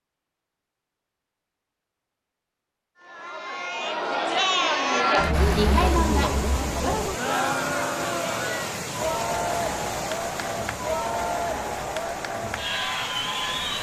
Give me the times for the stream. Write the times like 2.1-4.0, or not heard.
5.3-13.7.